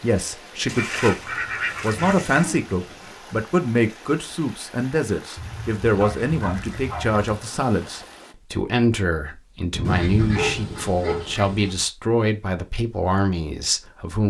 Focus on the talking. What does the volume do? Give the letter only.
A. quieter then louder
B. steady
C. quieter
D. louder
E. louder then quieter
B.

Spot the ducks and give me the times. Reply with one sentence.
The ducks can be heard from 0.7 to 2.5 s, from 5.3 to 7.2 s and from 9.8 to 11.8 s.